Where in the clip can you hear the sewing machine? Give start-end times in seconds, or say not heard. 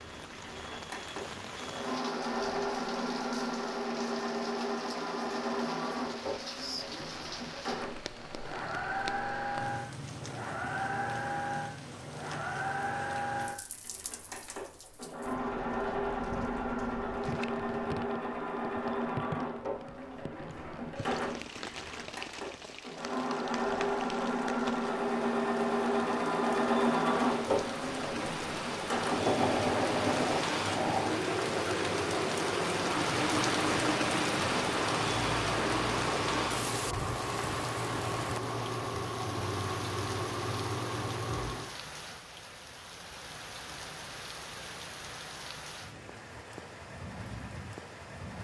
0.0-41.7.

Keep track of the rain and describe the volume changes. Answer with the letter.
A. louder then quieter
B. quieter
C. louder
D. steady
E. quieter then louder
A.